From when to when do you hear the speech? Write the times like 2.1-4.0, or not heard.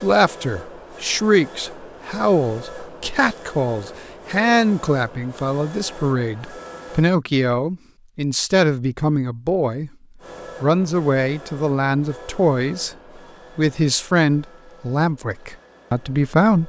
0.0-9.9, 10.6-12.9, 13.6-16.6.